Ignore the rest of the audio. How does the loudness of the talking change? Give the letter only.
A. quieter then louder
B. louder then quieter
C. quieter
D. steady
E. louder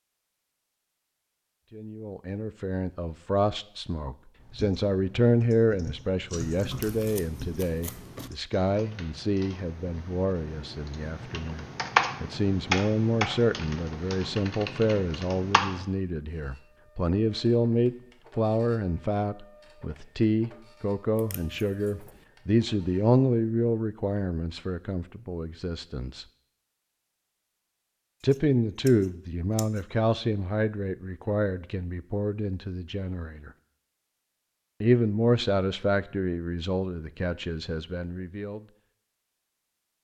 D.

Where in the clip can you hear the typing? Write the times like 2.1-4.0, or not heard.
4.3-15.8.